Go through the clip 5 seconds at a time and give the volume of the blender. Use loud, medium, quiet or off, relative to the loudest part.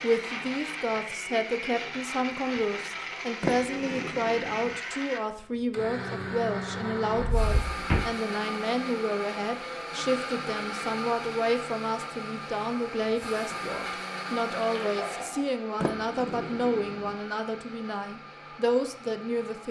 loud, loud, loud, medium.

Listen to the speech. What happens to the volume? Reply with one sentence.
The volume of the speech stays about the same.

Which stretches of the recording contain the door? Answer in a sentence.
You can hear the door from 3.4 to 4.8 s, from 7.2 to 8.1 s and from 15.8 to 17.1 s.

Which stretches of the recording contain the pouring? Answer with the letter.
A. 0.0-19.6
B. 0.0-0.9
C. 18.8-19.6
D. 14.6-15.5
D.